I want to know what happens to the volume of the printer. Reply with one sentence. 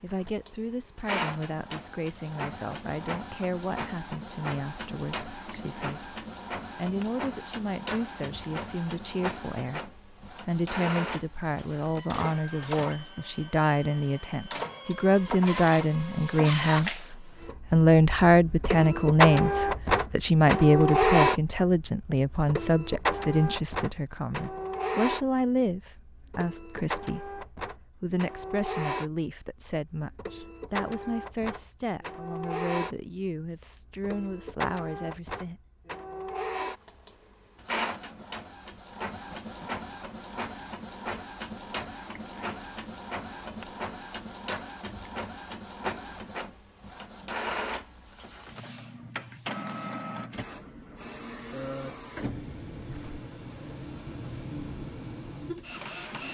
The loudness of the printer goes up, then down.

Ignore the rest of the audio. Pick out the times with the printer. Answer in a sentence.
The printer can be heard from 0.0 to 56.2 s.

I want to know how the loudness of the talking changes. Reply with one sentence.
The volume of the talking goes up, then down.